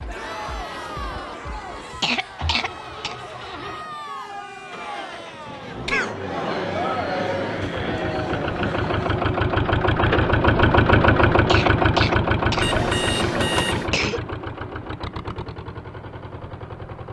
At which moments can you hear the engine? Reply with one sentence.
The engine can be heard from 0.0 to 17.0 s.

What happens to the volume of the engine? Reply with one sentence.
The volume of the engine goes up, then down.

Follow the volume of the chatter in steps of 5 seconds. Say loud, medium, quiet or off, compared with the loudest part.
medium, loud, off, off.